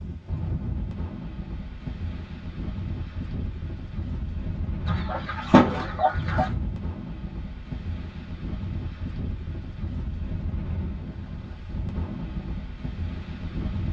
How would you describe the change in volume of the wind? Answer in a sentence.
The loudness of the wind stays about the same.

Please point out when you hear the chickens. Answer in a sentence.
You can hear the chickens from 4.8 to 6.5 s.